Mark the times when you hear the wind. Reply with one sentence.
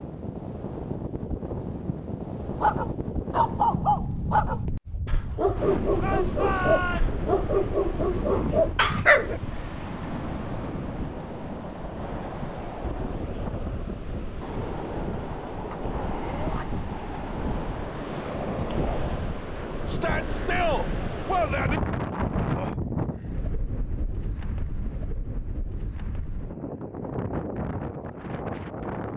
You can hear the wind from 0.0 to 29.1 s.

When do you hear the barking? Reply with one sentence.
The barking can be heard from 2.4 to 9.4 s.